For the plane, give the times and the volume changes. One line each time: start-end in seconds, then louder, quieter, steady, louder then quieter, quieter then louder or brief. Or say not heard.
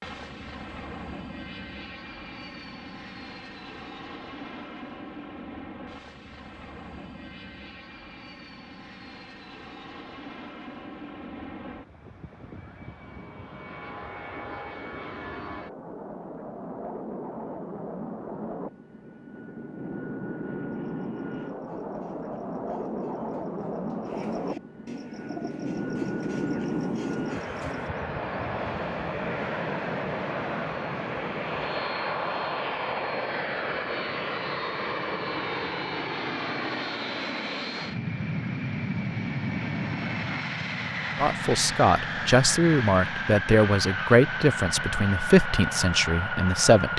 0.0-46.9 louder.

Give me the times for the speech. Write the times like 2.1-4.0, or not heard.
41.1-46.9.